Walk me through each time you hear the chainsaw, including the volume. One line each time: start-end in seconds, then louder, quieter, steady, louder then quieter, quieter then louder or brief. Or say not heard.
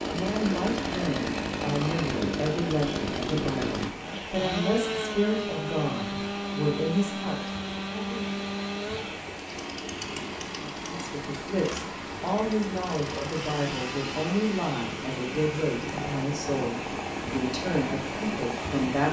0.0-18.8 quieter.